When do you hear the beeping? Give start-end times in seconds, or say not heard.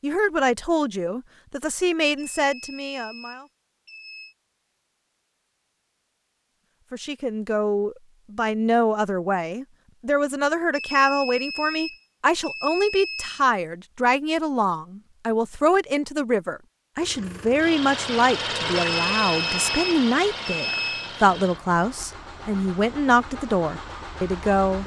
2.1-4.3, 10.7-13.4, 18.8-21.1.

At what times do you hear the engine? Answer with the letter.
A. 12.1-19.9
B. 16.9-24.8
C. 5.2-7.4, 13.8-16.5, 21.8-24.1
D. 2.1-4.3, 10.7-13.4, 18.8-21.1
B.